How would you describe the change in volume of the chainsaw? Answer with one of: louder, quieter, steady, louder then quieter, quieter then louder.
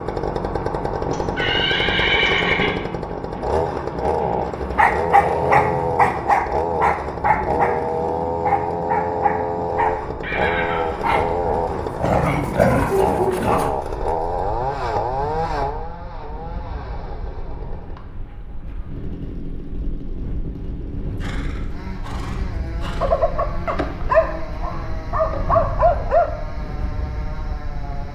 quieter.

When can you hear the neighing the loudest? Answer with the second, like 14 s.
2 s.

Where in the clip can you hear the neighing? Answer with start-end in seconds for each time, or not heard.
1.1-2.8, 10.2-11.2, 21.2-23.2.